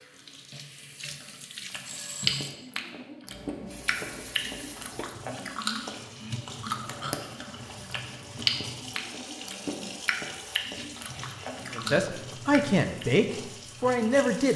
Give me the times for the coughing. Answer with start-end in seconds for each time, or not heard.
not heard.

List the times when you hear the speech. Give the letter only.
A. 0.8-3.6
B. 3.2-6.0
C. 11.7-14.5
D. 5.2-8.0
C.